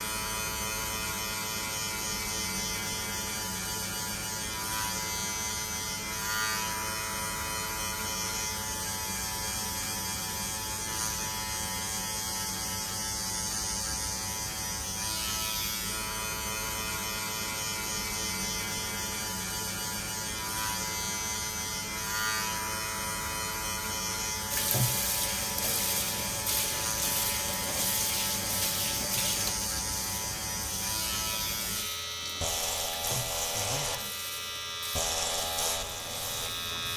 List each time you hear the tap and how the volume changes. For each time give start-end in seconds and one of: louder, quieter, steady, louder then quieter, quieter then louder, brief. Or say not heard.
24.5-36.9 quieter.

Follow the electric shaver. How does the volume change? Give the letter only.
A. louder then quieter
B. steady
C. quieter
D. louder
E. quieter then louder
B.